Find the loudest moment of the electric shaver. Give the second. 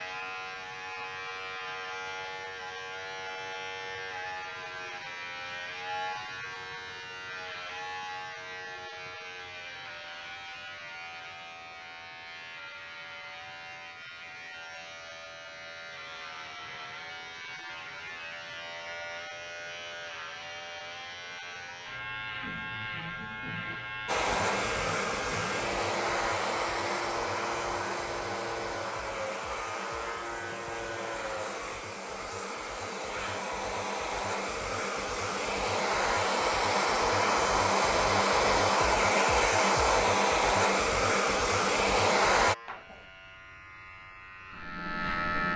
45 s.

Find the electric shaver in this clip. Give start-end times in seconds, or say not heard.
0.0-31.8, 42.4-45.5.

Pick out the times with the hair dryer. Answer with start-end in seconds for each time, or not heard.
24.1-42.5.